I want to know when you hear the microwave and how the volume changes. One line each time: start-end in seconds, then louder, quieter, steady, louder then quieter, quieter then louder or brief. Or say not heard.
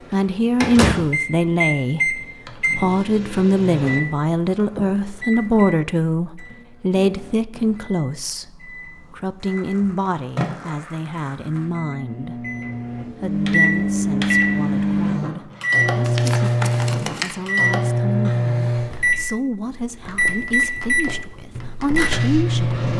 0.0-22.9 quieter then louder.